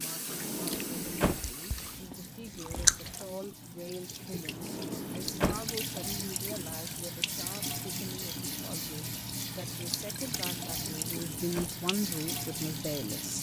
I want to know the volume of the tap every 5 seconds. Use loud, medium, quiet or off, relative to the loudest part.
medium, loud, loud.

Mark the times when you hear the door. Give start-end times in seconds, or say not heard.
0.2-1.4, 4.5-5.7, 10.8-11.8.